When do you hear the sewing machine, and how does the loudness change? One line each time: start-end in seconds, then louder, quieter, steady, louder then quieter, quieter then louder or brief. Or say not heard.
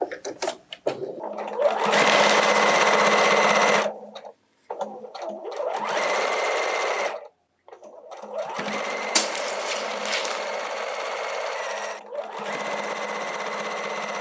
0.0-14.1 quieter.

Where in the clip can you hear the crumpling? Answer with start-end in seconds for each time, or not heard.
1.9-3.4, 9.2-10.5.